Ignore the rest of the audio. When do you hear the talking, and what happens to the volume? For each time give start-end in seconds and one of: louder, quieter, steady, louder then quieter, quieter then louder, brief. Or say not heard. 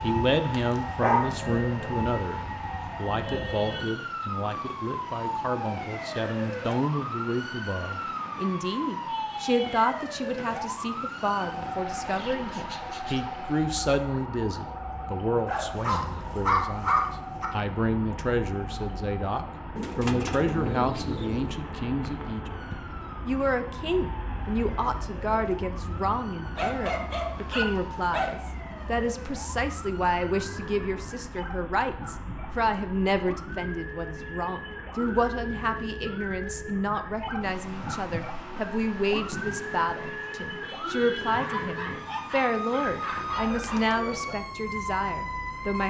0.0-45.8 steady.